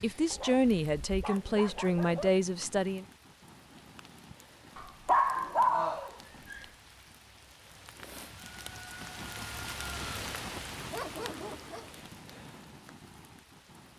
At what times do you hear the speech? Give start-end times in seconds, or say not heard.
0.0-3.0.